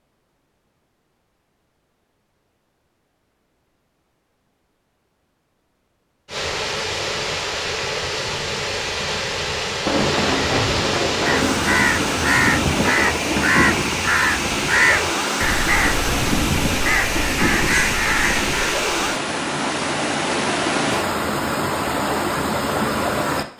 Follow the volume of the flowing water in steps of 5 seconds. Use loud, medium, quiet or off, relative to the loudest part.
off, loud, loud, loud, loud.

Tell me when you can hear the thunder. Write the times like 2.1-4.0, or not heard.
9.8-13.8.